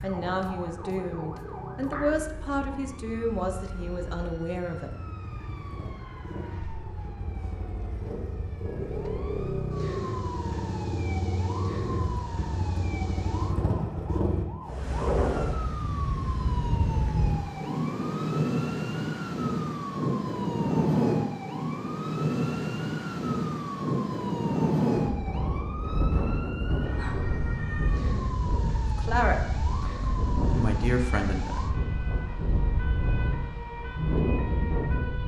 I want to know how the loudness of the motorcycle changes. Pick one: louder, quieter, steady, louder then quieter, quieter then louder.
louder.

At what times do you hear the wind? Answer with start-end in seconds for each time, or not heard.
14.7-35.2.